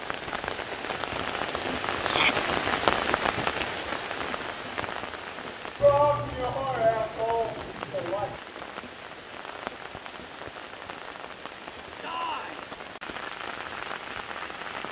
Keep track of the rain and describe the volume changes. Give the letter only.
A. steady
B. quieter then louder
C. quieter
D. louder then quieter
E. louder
C.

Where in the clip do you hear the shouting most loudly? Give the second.
6 s.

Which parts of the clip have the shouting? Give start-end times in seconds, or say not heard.
2.0-2.5, 5.8-8.4, 12.0-12.7.